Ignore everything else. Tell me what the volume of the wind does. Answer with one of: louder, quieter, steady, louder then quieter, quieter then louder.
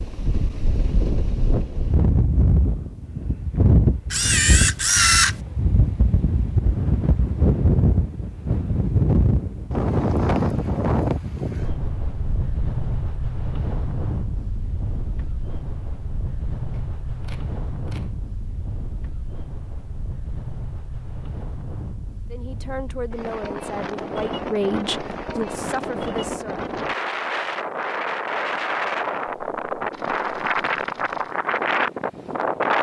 quieter then louder.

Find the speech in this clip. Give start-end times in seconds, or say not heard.
22.3-26.6.